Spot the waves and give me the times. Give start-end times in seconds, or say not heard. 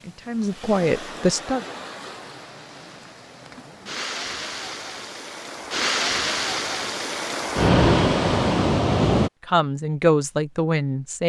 0.0-9.3.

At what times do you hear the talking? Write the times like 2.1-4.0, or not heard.
0.0-1.6, 9.4-11.2.